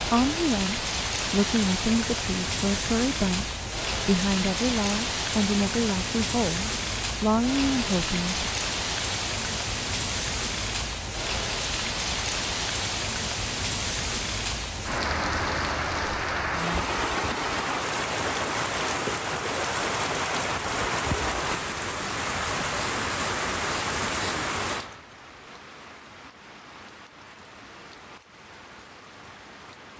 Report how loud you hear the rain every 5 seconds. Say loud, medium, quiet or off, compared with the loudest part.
loud, loud, loud, loud, loud, quiet.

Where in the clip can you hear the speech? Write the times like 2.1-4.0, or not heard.
0.0-8.4.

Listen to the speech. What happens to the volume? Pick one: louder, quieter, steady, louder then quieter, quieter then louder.
steady.